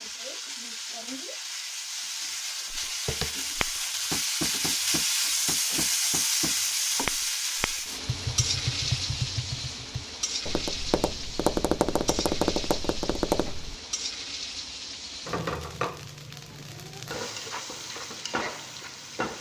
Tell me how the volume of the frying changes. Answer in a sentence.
The volume of the frying goes up, then down.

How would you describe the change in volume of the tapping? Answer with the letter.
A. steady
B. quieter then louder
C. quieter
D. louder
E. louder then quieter
D.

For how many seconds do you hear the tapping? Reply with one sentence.
You can hear the tapping for 11 seconds altogether.